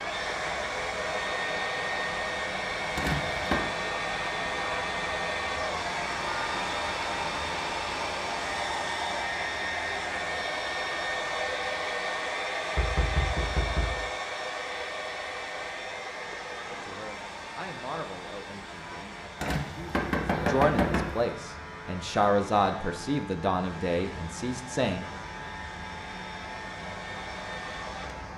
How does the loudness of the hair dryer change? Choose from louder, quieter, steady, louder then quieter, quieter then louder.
quieter.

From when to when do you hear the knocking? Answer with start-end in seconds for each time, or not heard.
3.0-3.6, 12.8-14.0, 19.4-21.3.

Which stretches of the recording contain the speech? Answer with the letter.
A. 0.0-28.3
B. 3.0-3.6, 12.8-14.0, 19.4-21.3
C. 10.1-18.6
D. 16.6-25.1
D.